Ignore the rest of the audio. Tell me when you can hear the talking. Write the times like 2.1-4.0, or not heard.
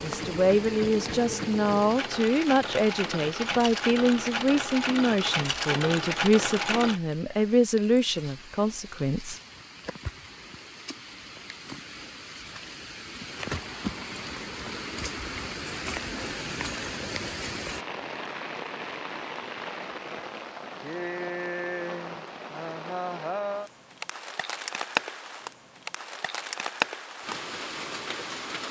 0.0-9.4.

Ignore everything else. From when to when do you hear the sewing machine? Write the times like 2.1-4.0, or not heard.
0.0-7.0.